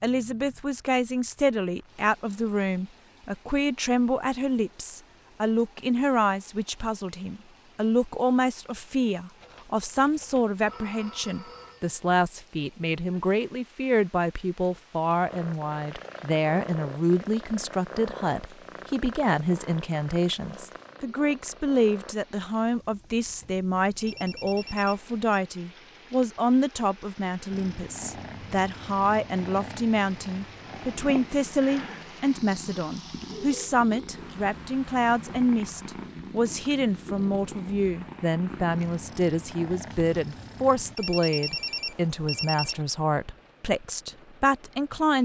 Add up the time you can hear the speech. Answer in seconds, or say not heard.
45 s.